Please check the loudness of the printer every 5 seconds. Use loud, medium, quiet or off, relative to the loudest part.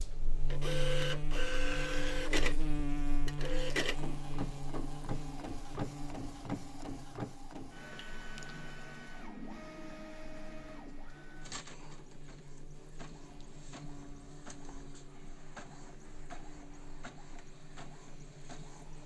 loud, medium, quiet, quiet.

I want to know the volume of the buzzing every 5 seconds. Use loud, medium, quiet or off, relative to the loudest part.
loud, medium, quiet, quiet.